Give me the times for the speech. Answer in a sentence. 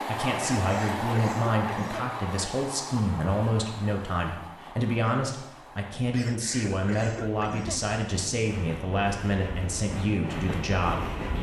You can hear the speech from 0.1 to 11.2 s.